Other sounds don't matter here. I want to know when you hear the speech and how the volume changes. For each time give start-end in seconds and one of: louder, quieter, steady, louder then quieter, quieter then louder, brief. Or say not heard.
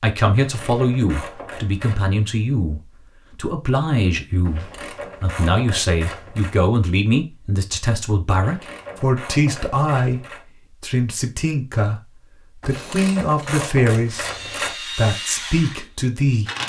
0.0-16.5 steady.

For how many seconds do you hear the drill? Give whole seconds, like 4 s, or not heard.
4 s.